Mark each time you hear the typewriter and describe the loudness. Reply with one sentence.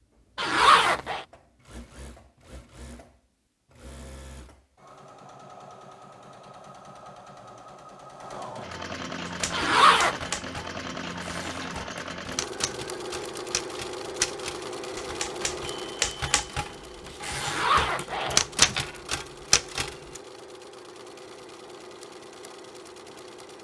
The typewriter can be heard from 9.2 to 20.2 s, getting louder.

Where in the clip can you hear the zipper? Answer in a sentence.
You can hear the zipper from 0.3 to 1.2 s, from 9.5 to 10.2 s and from 17.4 to 18.4 s.